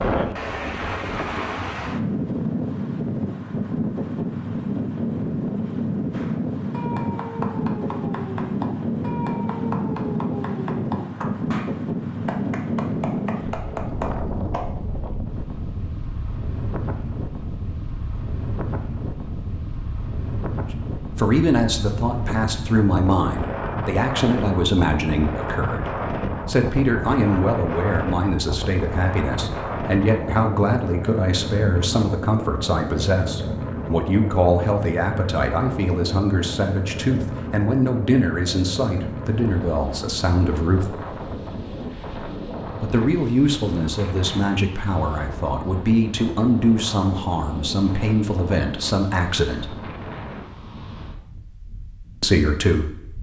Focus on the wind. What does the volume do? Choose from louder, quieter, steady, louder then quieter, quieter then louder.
quieter.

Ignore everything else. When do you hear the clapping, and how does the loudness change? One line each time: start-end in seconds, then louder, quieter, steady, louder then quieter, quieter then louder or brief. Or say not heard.
6.1-14.8 steady.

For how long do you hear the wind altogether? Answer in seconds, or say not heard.
53 s.